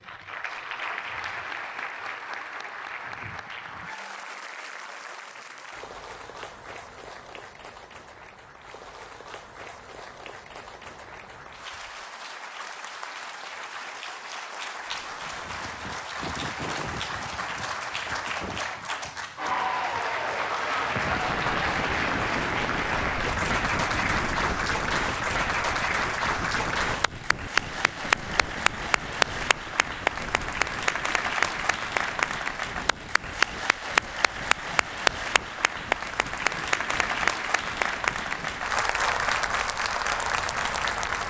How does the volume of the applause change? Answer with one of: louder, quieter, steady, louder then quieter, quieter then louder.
louder.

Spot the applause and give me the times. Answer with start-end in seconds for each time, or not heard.
0.0-41.2.